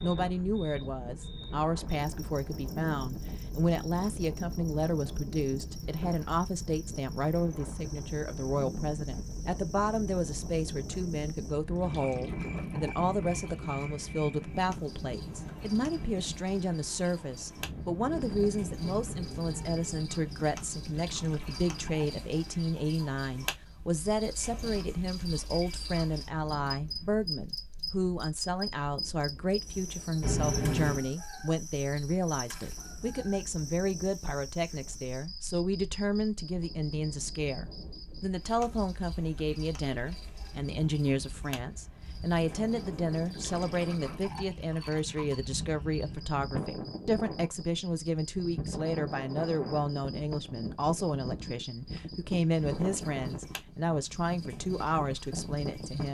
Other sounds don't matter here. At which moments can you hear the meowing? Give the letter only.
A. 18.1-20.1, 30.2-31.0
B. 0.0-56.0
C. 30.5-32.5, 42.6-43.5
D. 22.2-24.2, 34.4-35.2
A.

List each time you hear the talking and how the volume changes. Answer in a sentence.
The talking can be heard from 0.0 to 56.0 s, at a steady volume.